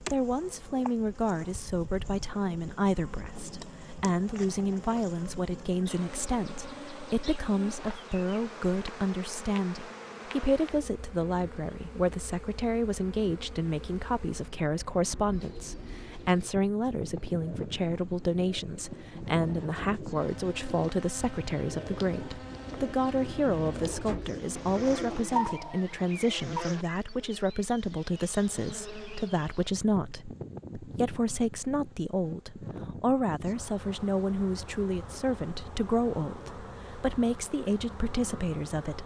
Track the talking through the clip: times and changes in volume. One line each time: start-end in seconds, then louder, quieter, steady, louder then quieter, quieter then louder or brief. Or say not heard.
0.0-39.0 steady.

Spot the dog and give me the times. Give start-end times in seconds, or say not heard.
not heard.